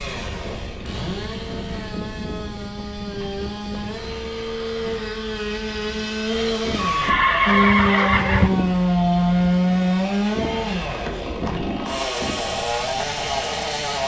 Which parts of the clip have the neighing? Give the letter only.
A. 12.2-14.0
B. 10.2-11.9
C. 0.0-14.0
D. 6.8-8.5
D.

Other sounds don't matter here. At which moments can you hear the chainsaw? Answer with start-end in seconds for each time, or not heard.
0.0-14.0.